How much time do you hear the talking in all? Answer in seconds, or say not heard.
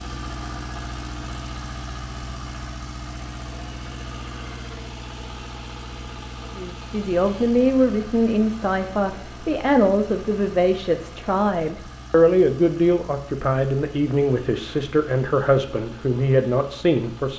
11 s.